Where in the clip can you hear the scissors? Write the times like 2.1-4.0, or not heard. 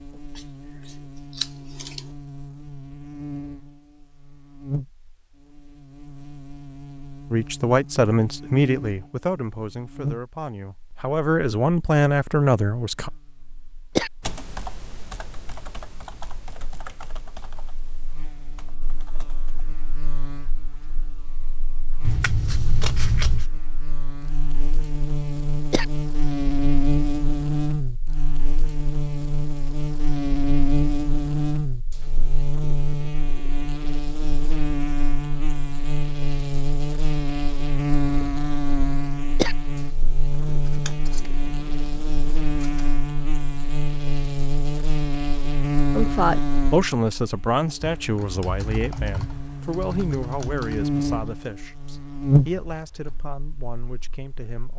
0.3-2.0, 22.0-23.4, 40.3-43.0.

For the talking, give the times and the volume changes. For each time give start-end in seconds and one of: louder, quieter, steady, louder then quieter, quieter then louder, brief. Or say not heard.
7.3-13.1 quieter then louder
46.0-54.7 quieter.